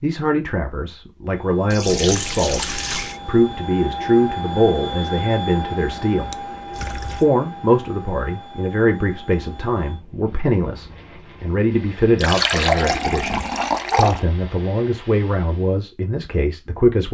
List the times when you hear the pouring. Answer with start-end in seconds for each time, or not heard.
1.7-3.2, 6.3-7.2, 12.2-14.2.